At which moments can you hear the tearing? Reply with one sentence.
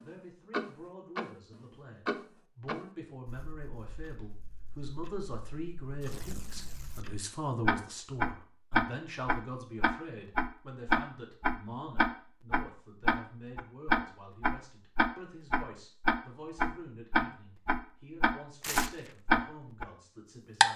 You can hear the tearing from 6.0 to 7.1 s and from 18.6 to 19.1 s.